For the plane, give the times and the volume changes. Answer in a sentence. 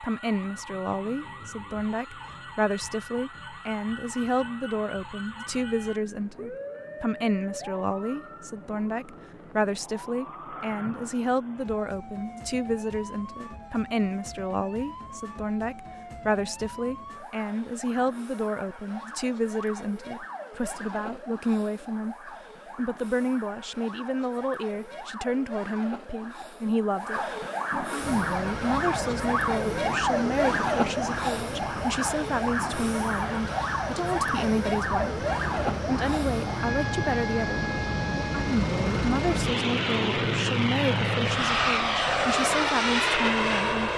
You can hear the plane from 27.9 to 43.9 s, getting louder.